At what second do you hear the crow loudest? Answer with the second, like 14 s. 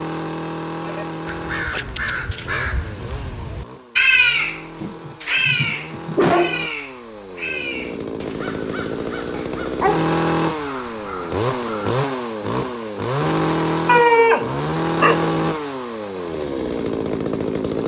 4 s.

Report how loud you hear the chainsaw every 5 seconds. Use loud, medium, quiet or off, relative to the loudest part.
medium, medium, loud, loud.